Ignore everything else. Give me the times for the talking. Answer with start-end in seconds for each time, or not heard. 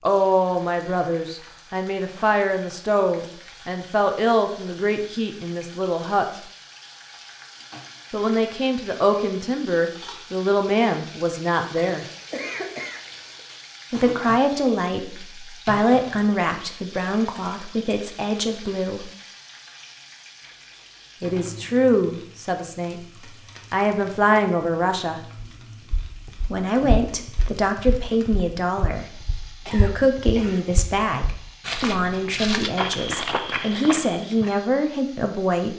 0.1-6.4, 8.1-12.1, 13.9-19.1, 21.2-23.0, 23.7-25.2, 26.5-35.7.